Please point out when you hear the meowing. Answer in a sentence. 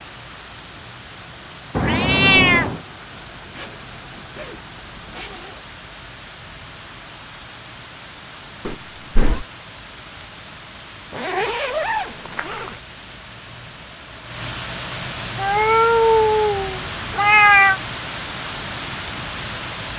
You can hear the meowing from 1.8 to 2.8 s, from 8.7 to 9.4 s and from 15.3 to 17.8 s.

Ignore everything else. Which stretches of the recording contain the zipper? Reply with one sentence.
The zipper can be heard from 3.4 to 5.7 s and from 11.1 to 12.8 s.